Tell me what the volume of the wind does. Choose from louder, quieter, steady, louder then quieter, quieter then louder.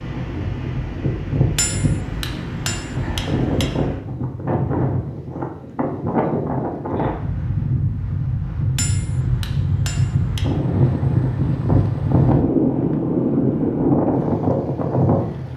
louder.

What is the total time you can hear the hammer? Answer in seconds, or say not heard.
4 s.